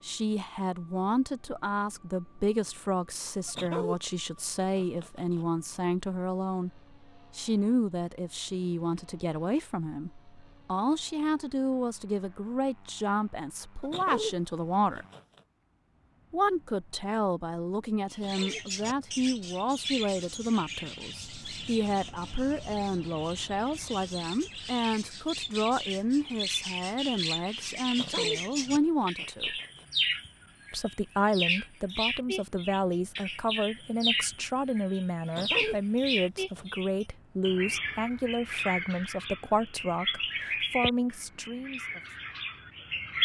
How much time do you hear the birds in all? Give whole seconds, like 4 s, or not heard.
25 s.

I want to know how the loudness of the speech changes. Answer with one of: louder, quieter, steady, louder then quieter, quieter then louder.
steady.